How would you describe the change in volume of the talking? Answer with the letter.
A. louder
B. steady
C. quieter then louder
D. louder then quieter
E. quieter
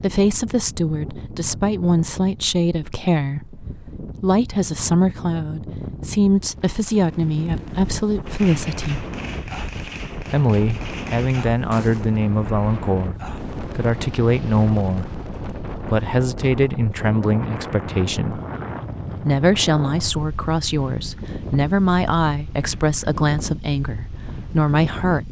B.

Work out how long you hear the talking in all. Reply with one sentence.
You can hear the talking for 23 seconds altogether.